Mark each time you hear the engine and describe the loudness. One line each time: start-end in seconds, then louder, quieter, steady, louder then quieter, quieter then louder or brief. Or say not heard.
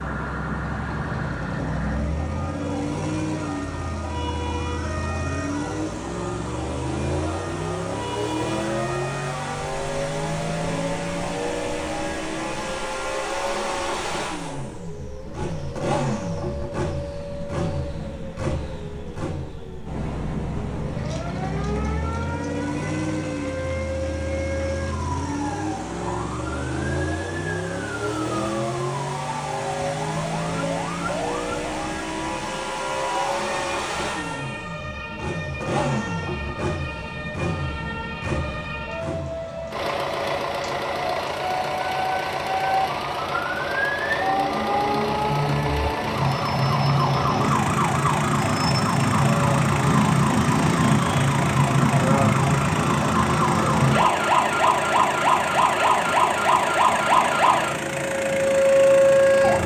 0.0-59.6 steady.